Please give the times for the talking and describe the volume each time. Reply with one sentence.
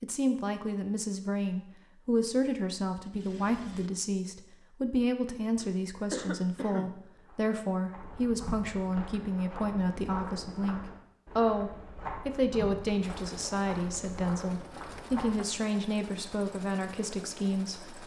The talking can be heard from 0.0 to 18.0 s, at a steady volume.